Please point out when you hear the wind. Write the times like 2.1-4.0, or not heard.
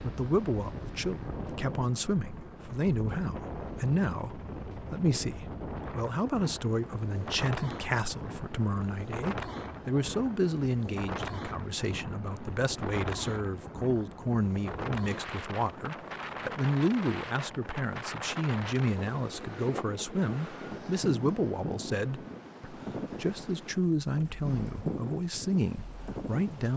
0.0-26.7.